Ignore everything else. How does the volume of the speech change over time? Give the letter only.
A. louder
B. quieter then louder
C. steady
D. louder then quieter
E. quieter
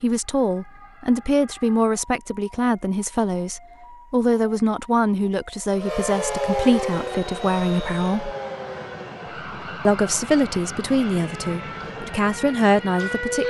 C.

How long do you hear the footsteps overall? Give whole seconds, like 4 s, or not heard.
not heard.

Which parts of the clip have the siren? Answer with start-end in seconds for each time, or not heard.
0.0-13.4.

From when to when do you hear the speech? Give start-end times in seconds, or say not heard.
0.0-8.3, 9.8-13.4.